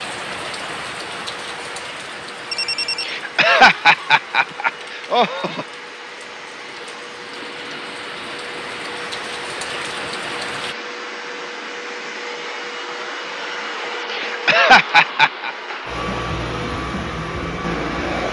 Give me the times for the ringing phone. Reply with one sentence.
You can hear the ringing phone from 2.5 to 3.1 s.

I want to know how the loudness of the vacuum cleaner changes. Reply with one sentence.
The volume of the vacuum cleaner goes up.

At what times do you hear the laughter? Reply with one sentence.
You can hear the laughter from 3.0 to 5.7 s and from 14.1 to 15.5 s.